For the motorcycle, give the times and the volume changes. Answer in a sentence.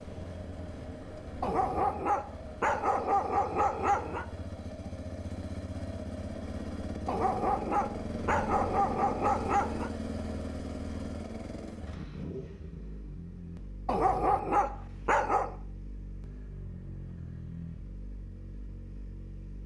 You can hear the motorcycle from 0.0 to 19.6 s, getting louder then quieter.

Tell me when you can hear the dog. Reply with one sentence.
The dog can be heard from 1.4 to 4.2 s, from 7.0 to 9.9 s and from 13.8 to 15.6 s.